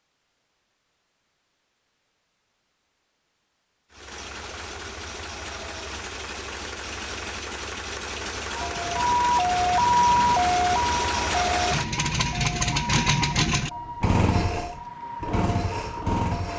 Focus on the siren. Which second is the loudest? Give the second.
10 s.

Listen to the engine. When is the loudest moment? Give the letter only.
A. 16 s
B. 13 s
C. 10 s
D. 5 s
B.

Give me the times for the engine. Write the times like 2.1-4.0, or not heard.
3.9-16.5.